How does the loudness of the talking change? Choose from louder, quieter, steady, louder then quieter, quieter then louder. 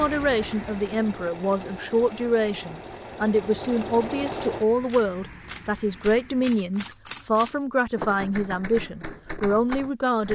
steady.